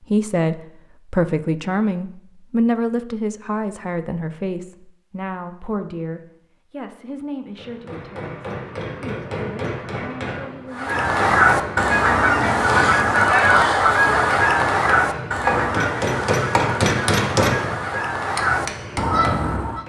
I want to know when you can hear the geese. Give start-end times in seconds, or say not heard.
10.7-19.8.